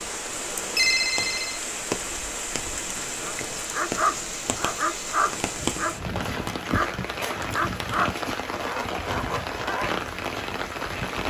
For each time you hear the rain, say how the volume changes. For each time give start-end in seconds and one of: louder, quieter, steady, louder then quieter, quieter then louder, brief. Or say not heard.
0.0-11.2 steady.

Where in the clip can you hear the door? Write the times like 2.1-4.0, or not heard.
not heard.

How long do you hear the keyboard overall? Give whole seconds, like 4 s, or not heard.
not heard.